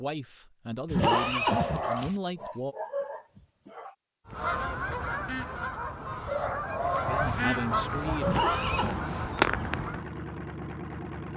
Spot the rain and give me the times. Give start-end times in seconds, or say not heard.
not heard.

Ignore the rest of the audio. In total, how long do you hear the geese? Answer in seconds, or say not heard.
6 s.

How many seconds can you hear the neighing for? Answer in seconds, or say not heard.
2 s.